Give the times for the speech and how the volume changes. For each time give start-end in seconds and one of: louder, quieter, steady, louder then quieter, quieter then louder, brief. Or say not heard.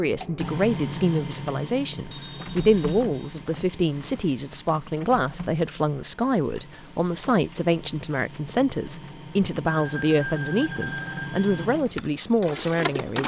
0.0-13.2 steady.